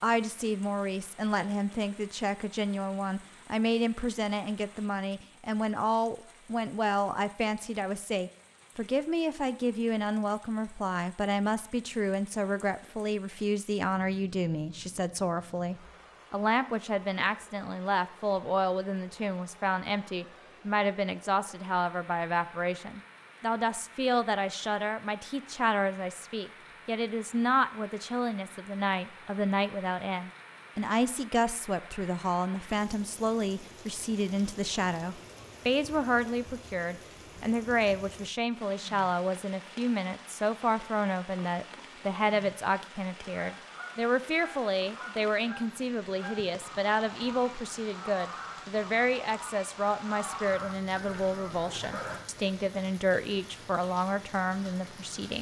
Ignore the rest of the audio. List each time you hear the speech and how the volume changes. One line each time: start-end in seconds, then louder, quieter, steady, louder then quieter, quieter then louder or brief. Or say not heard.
0.0-55.3 steady.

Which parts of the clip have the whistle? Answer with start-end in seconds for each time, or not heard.
not heard.